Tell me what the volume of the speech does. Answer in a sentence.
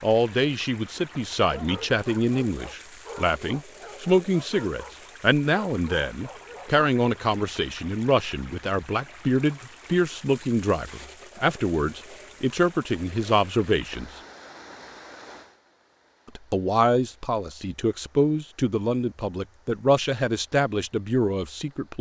The volume of the speech stays about the same.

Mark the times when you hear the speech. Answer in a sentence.
The speech can be heard from 0.0 to 14.1 s and from 16.4 to 21.9 s.